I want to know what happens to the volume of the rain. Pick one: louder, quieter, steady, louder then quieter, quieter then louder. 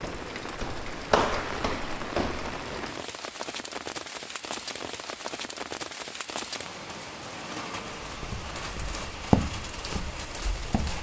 steady.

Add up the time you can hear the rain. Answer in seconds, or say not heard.
11 s.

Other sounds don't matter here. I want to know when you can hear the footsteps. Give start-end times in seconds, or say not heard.
0.0-2.6, 8.0-10.9.